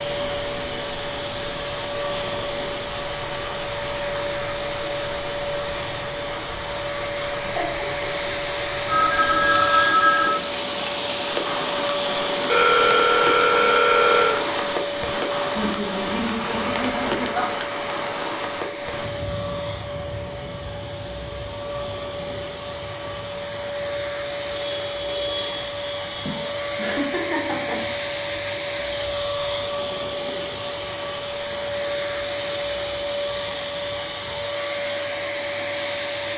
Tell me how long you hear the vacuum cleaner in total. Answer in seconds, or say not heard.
36 s.